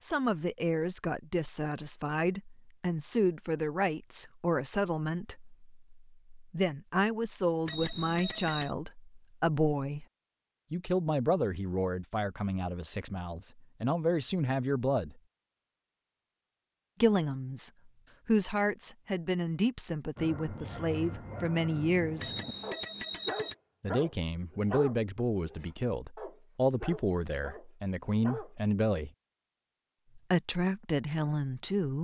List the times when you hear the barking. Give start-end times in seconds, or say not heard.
20.1-28.6.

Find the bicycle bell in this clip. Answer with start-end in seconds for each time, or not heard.
7.7-8.8, 22.2-23.6.